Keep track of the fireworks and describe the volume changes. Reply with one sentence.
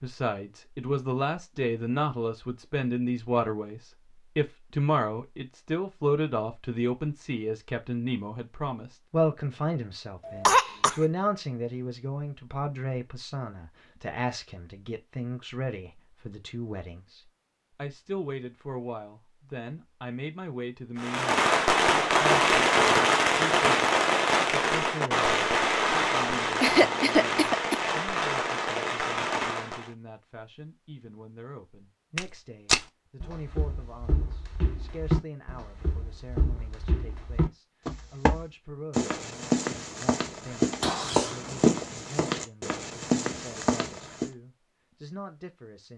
The volume of the fireworks goes down.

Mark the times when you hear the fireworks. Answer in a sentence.
You can hear the fireworks from 20.9 to 29.9 s.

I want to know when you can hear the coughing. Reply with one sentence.
The coughing can be heard from 10.2 to 10.9 s, from 26.6 to 27.8 s and from 40.8 to 41.8 s.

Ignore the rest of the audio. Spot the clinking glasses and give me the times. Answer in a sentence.
The clinking glasses can't be heard in this clip.